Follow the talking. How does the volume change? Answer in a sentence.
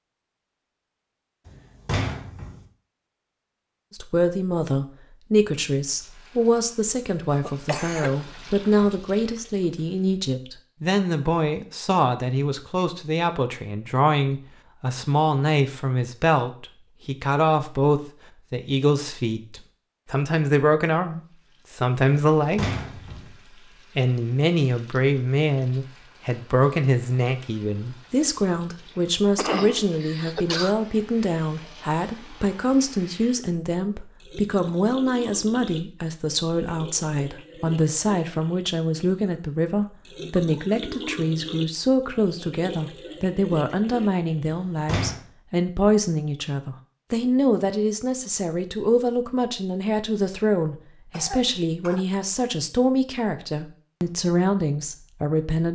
The loudness of the talking stays about the same.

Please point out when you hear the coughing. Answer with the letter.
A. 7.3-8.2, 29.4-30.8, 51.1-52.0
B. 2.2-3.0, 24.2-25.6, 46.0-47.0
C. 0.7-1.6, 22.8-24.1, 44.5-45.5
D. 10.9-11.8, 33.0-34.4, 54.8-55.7
A.